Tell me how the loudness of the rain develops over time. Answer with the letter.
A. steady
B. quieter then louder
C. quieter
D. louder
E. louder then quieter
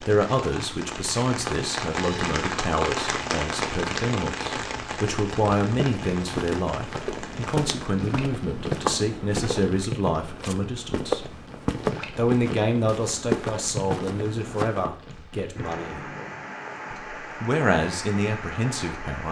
C.